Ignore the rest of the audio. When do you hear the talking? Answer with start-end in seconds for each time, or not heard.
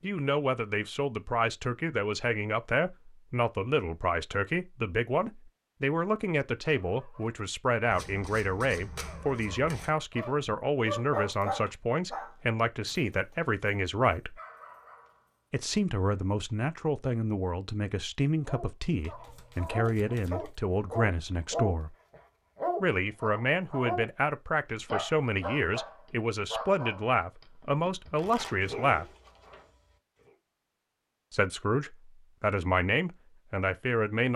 0.0-14.4, 15.5-21.9, 22.8-29.1, 31.3-34.3.